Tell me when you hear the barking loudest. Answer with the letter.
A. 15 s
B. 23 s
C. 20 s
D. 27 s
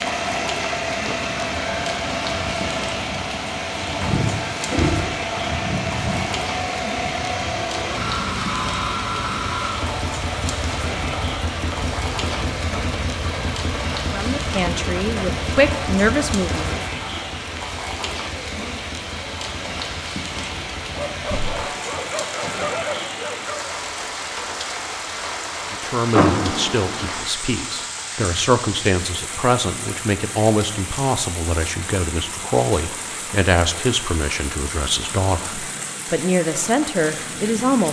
B.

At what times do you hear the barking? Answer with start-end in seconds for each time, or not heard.
20.9-23.7.